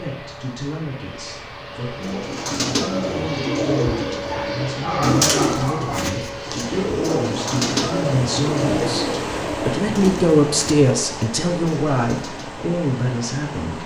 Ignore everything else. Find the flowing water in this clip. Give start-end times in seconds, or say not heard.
6.3-13.8.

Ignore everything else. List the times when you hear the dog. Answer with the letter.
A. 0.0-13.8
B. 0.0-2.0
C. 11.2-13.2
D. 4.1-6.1
D.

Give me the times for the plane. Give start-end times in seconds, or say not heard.
0.0-7.0.